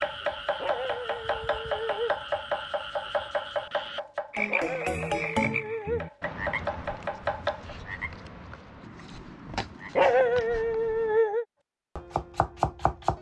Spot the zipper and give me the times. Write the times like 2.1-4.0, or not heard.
not heard.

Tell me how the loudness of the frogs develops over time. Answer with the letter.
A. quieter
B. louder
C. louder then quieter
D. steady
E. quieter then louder
C.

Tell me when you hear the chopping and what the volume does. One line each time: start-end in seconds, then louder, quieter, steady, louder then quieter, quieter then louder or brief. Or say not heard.
0.0-7.8 quieter then louder
11.9-13.1 brief.